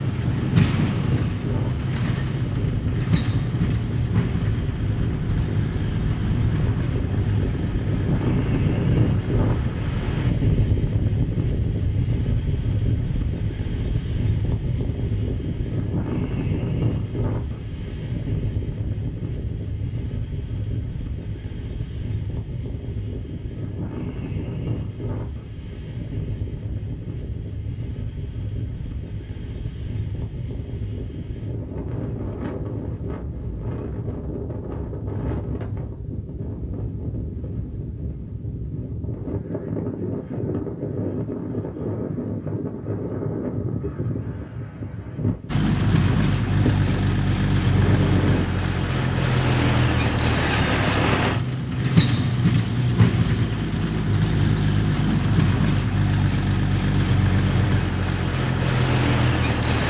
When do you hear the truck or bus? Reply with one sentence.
You can hear the truck or bus from 0.0 to 10.3 s and from 45.5 to 59.8 s.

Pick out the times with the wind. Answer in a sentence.
You can hear the wind from 0.0 to 48.5 s.